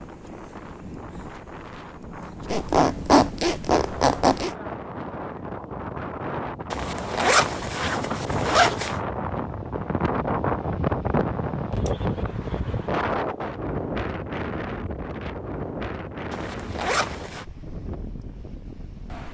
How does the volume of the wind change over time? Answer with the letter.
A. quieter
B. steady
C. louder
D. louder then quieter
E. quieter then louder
D.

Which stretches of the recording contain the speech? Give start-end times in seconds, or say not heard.
not heard.